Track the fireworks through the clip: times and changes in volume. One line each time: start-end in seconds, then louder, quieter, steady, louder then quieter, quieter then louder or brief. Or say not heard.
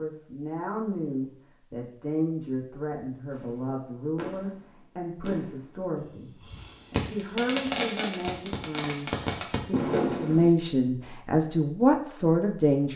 3.3-10.5 louder.